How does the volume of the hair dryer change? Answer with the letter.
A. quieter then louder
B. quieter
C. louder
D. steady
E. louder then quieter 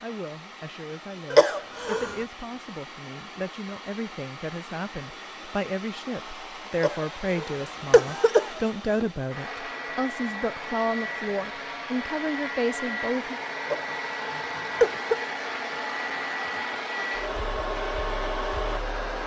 C.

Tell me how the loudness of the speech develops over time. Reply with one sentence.
The loudness of the speech goes up.